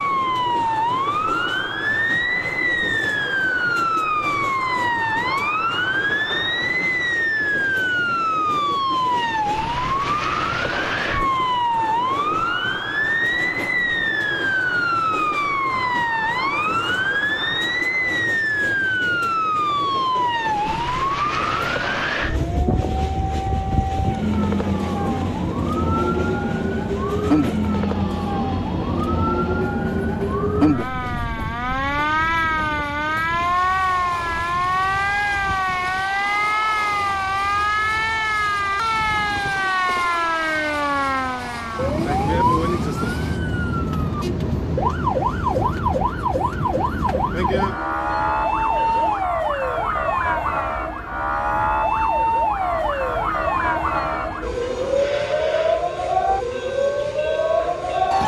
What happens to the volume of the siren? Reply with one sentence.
The volume of the siren stays about the same.